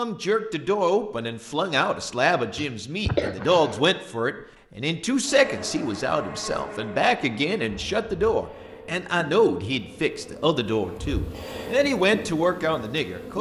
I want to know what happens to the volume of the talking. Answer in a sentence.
The volume of the talking stays about the same.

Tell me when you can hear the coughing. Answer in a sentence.
You can hear the coughing from 2.5 to 3.9 s.